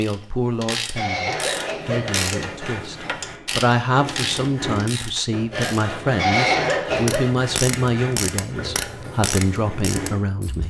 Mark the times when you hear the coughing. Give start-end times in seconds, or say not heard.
0.9-3.1, 6.2-7.3.